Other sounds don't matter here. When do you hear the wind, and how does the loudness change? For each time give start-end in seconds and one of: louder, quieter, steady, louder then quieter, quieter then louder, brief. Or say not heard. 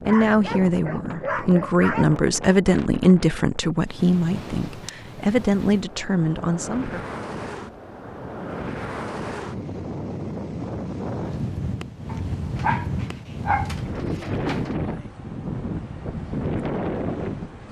0.0-17.6 louder.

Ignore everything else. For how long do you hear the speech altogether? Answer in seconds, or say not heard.
7 s.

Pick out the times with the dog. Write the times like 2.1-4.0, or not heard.
0.1-2.0, 12.1-14.7.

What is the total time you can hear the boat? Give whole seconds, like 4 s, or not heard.
not heard.